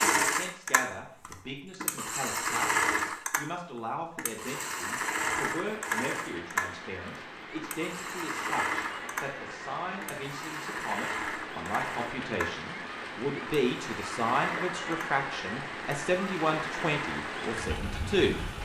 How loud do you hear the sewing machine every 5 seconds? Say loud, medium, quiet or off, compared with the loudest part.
loud, loud, medium, medium.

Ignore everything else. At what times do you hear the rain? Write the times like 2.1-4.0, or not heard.
4.5-18.5.